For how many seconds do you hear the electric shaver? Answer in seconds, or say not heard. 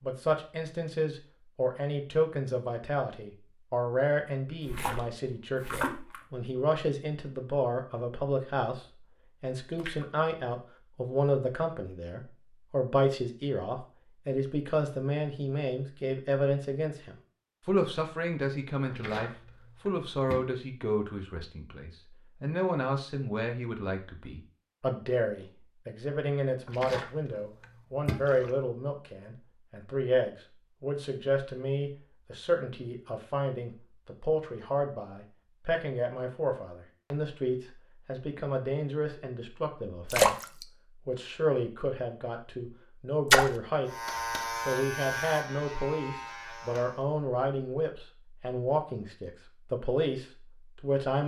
3 s.